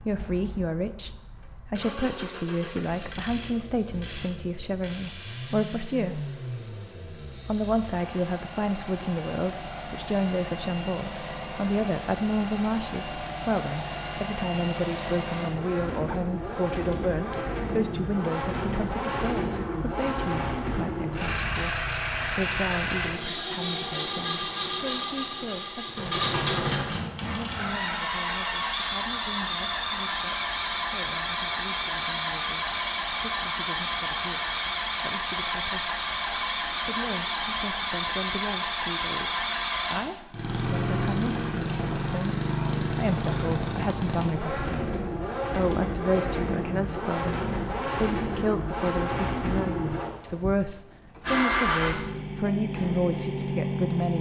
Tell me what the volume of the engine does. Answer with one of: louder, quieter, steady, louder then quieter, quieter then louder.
louder.